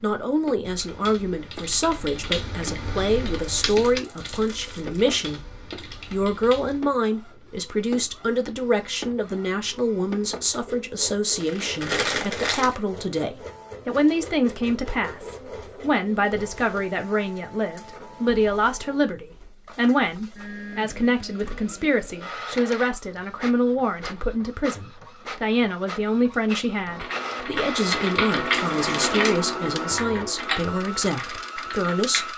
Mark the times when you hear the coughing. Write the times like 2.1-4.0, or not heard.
not heard.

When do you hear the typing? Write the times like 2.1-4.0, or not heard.
0.7-6.8, 26.9-32.3.